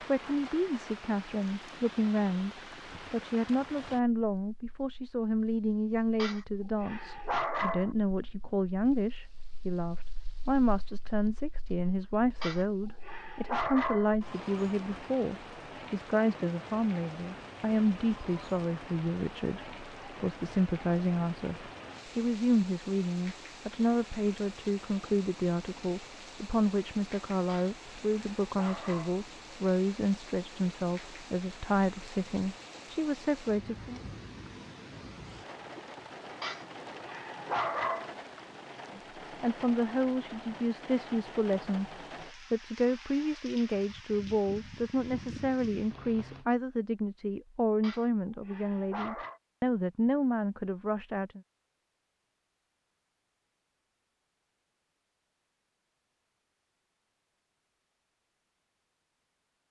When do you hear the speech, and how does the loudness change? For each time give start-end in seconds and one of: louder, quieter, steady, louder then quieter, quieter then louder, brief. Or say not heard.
0.1-34.0 steady
38.9-51.4 steady.